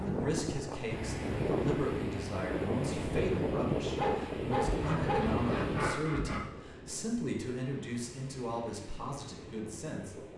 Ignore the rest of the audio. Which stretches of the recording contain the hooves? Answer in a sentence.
The hooves can't be heard in this clip.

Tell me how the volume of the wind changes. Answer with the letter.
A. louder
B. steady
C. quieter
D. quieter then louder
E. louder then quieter
C.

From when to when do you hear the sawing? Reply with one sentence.
The sawing can be heard from 4.7 to 6.4 s.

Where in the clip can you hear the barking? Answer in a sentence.
The barking can be heard from 4.0 to 5.3 s.